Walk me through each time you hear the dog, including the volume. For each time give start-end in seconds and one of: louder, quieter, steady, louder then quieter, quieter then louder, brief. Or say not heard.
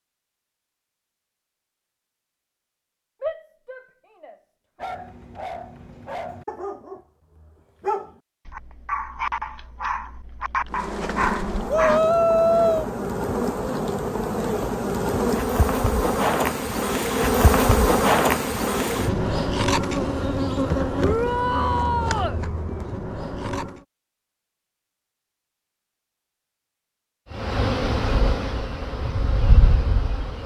4.8-12.0 louder.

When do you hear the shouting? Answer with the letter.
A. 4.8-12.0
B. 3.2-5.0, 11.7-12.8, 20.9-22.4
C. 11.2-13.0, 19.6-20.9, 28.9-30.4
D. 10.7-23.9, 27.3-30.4
B.